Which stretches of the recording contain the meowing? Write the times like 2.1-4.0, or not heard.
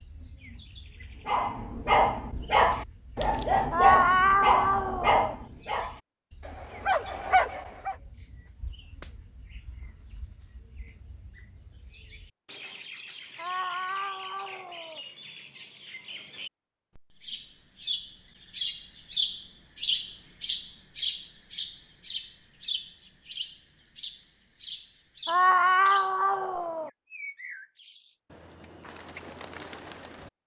3.7-5.3, 13.3-15.0, 25.2-26.9.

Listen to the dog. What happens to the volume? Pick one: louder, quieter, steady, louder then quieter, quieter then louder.
quieter then louder.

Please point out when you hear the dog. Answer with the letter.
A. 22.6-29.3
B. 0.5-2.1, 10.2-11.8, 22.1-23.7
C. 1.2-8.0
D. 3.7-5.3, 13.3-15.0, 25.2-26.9
C.